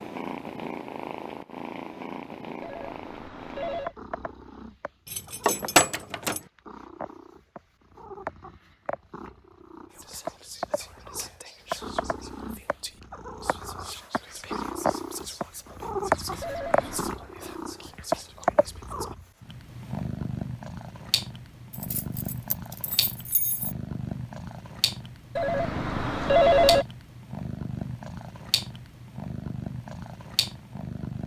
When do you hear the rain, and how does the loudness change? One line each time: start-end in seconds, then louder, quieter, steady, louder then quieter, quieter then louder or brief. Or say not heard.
not heard.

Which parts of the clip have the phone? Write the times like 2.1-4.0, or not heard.
2.6-4.0, 16.4-17.1, 25.4-26.9.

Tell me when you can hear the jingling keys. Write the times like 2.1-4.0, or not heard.
5.0-6.4, 21.7-23.8.